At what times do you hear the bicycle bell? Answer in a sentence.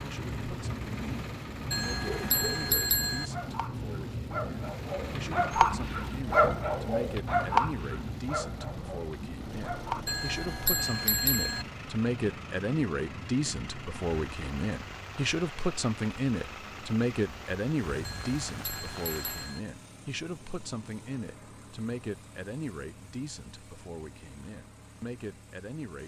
The bicycle bell can be heard from 1.7 to 3.3 s, from 10.1 to 11.7 s and from 18.0 to 19.6 s.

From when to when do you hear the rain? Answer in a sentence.
The rain can be heard from 0.0 to 19.6 s.